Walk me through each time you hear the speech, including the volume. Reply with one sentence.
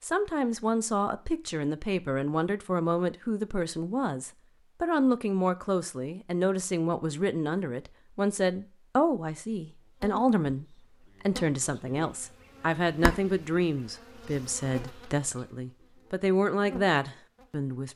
The speech can be heard from 0.0 to 17.9 s, at a steady volume.